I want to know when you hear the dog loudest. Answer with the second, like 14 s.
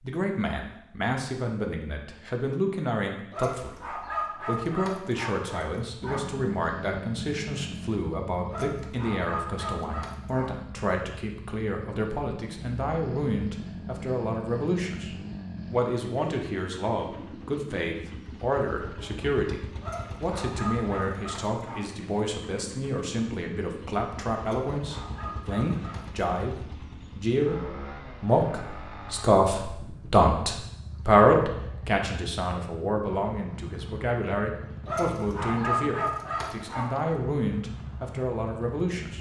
36 s.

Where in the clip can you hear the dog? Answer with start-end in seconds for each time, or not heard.
3.3-6.3, 8.4-10.6, 19.8-21.9, 24.4-26.2, 34.9-37.1.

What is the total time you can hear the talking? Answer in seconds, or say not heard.
39 s.